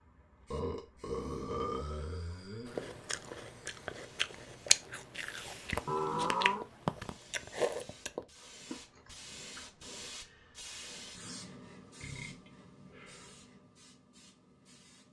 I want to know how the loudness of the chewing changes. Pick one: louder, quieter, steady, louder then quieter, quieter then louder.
louder then quieter.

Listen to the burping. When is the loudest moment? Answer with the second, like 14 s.
6 s.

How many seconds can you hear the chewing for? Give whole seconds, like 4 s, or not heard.
7 s.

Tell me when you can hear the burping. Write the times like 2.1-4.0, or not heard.
0.5-2.9, 5.8-6.7, 12.0-13.3.